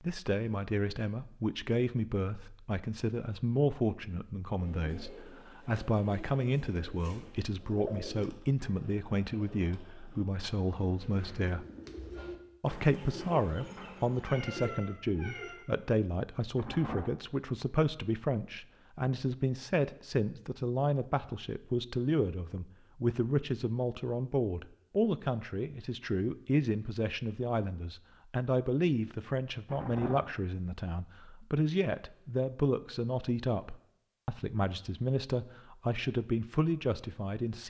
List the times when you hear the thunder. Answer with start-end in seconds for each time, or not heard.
16.6-17.1, 29.6-30.2.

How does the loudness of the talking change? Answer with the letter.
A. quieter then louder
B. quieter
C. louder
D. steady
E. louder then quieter
D.